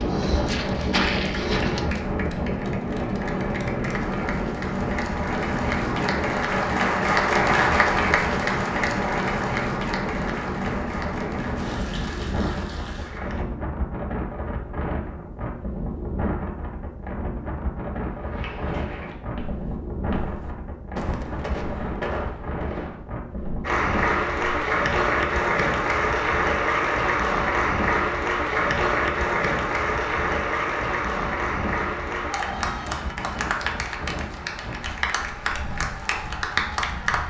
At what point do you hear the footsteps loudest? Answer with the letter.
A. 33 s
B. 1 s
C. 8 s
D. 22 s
B.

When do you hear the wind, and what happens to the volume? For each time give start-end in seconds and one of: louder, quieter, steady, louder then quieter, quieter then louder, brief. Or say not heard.
0.0-37.2 quieter.